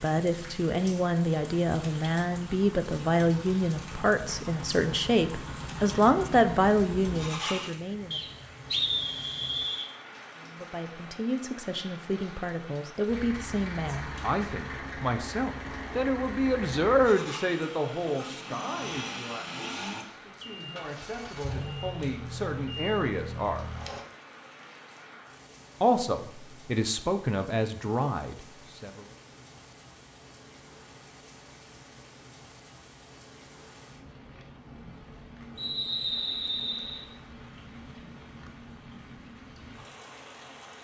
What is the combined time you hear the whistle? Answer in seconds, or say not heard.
3 s.